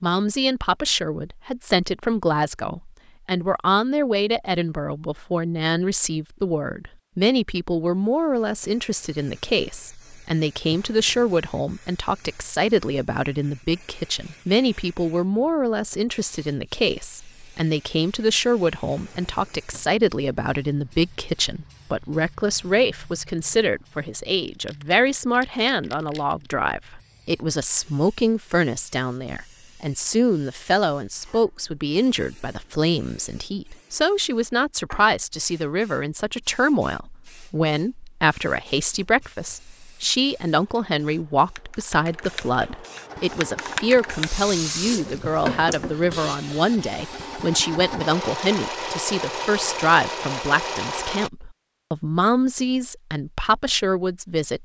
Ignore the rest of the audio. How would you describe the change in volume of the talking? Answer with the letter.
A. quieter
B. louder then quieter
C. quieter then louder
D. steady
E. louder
D.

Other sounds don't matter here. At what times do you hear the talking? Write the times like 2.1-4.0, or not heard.
0.0-54.5.